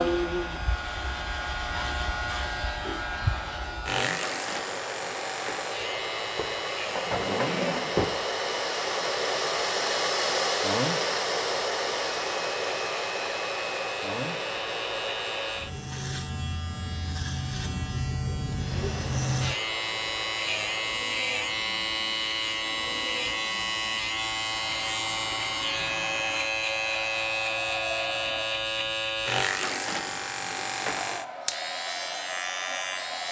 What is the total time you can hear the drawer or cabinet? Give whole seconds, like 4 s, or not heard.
2 s.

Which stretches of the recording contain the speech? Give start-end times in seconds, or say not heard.
not heard.